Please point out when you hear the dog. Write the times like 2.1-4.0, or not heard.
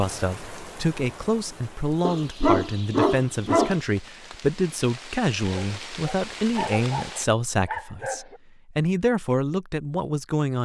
2.0-3.8, 5.5-8.4.